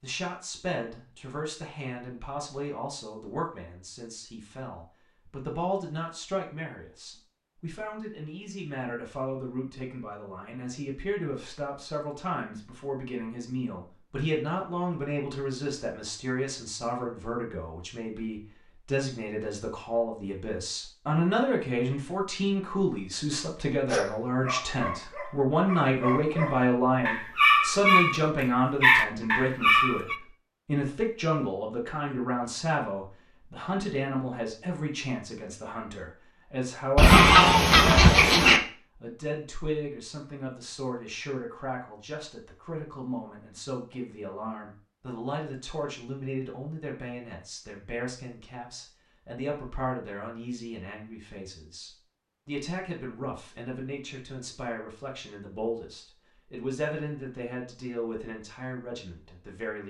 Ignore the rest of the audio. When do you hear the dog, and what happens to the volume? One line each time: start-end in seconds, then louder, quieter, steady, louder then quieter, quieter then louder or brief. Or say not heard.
23.9-30.1 louder.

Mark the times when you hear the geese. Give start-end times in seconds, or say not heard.
37.0-38.6.